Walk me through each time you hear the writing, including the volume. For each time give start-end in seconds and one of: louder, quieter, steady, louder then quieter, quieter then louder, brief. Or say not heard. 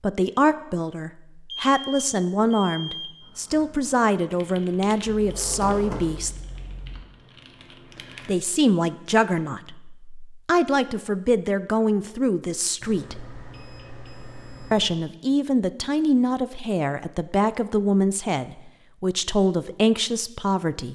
not heard.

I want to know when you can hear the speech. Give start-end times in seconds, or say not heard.
0.0-6.3, 8.2-13.2, 14.7-20.9.